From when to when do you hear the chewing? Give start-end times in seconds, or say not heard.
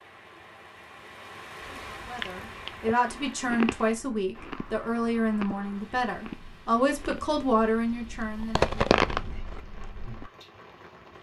1.6-10.3.